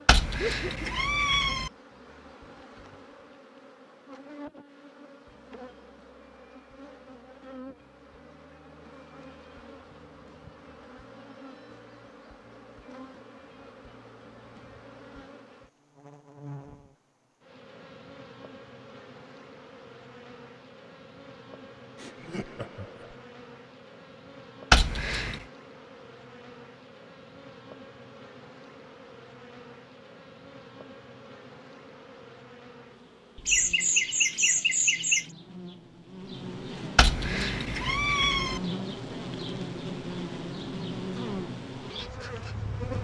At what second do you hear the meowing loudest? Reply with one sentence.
The loudest moment of the meowing is at 25 seconds.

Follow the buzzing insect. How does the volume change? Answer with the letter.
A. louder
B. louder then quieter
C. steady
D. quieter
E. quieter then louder
A.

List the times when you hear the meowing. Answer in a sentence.
The meowing can be heard from 0.1 to 1.7 s, from 24.7 to 25.4 s and from 37.0 to 38.6 s.